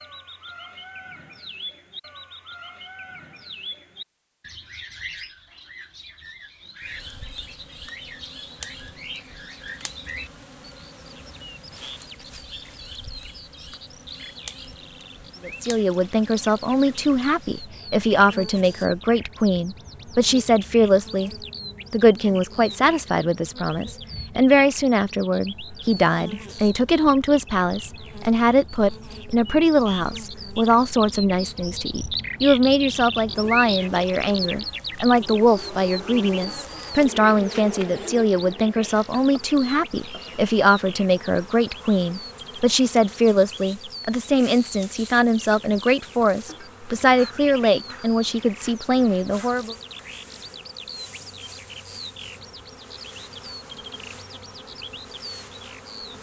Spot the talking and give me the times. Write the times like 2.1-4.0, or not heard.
15.4-21.3, 21.9-49.8.